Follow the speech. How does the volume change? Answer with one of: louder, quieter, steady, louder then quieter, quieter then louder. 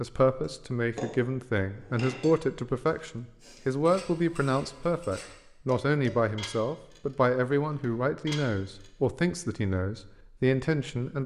steady.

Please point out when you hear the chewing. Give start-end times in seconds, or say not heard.
not heard.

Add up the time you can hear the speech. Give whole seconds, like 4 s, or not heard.
11 s.